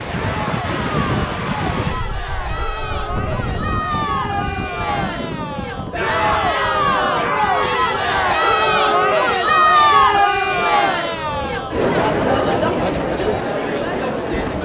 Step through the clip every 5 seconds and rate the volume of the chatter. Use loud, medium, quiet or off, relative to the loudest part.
medium, loud, loud.